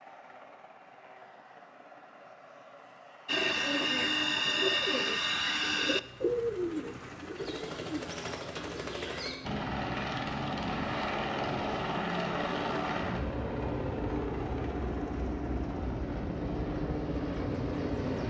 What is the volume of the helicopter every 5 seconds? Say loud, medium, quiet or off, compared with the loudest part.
quiet, medium, loud, loud.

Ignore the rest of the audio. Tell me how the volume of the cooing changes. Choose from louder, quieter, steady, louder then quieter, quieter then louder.
quieter.